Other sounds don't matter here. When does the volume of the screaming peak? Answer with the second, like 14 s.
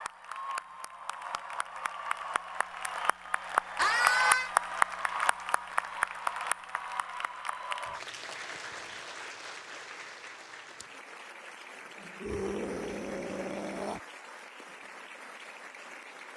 4 s.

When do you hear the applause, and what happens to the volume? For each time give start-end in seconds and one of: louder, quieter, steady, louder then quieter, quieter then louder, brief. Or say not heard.
0.0-16.3 louder then quieter.